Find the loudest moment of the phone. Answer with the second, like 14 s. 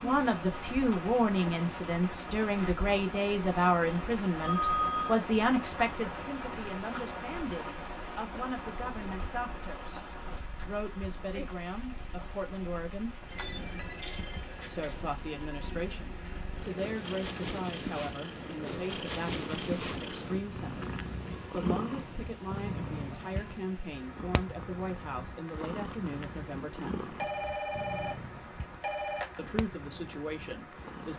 5 s.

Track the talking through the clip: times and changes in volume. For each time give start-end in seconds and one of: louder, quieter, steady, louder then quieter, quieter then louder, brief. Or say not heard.
0.0-10.1 quieter
10.7-13.2 brief
14.7-27.1 steady
29.4-31.1 brief.